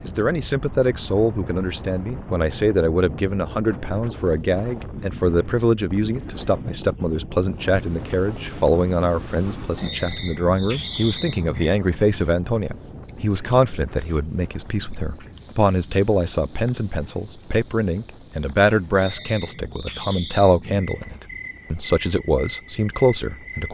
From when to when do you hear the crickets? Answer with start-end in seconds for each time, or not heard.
7.7-23.7.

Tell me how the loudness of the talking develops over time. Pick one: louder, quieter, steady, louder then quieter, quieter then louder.
steady.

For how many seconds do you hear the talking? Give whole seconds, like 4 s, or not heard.
24 s.